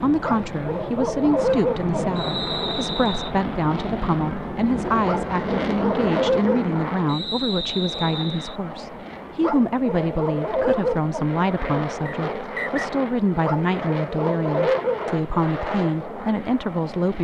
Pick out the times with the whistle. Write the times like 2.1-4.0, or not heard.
2.1-3.4, 7.0-8.6, 12.1-12.8.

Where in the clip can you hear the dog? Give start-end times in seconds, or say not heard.
0.2-2.2, 5.0-6.7, 9.4-11.2, 13.4-15.1.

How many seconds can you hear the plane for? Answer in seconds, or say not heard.
17 s.